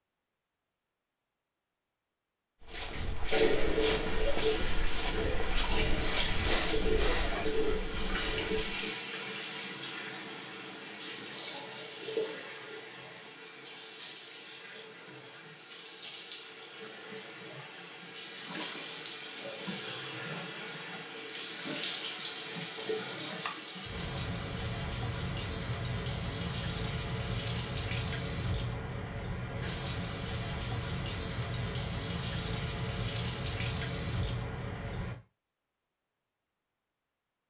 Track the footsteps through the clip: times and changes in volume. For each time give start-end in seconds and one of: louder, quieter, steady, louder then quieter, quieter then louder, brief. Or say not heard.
2.6-8.6 quieter.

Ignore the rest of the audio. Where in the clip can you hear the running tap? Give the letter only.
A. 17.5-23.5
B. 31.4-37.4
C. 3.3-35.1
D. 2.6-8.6
C.